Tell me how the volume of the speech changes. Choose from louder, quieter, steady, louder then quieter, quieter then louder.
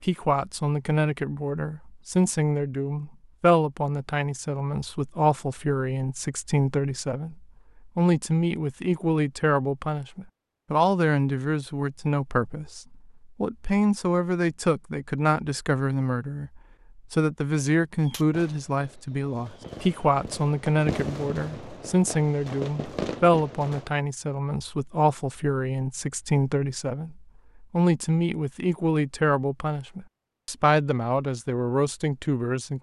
steady.